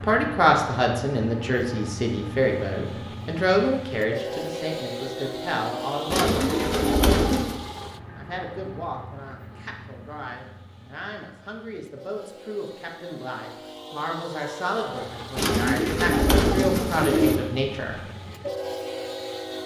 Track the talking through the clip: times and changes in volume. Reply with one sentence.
You can hear the talking from 0.0 to 6.6 s, getting quieter; and from 8.2 to 18.0 s, getting louder.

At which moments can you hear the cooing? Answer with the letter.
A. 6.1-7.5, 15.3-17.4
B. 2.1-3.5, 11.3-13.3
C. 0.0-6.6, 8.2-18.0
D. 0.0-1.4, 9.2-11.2
A.